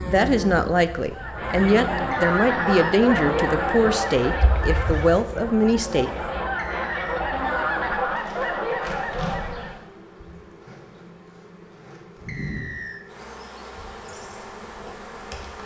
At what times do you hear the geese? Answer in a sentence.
You can hear the geese from 1.1 to 9.8 s.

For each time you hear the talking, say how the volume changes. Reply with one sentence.
You can hear the talking from 0.0 to 6.1 s, at a steady volume.